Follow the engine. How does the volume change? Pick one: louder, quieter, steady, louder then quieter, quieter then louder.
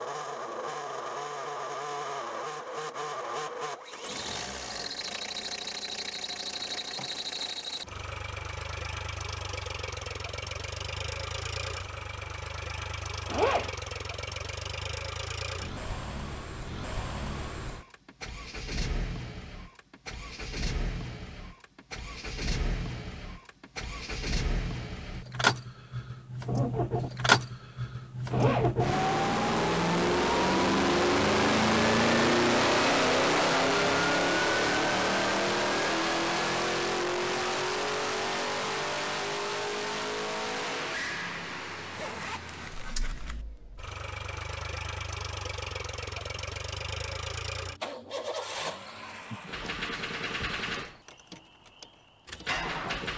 louder then quieter.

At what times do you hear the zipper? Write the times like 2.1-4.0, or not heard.
13.2-13.7, 28.3-28.8, 41.9-43.5.